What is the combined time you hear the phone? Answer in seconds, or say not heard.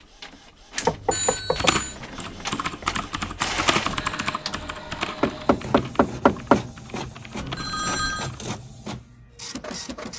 2 s.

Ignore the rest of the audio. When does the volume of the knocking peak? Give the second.
6 s.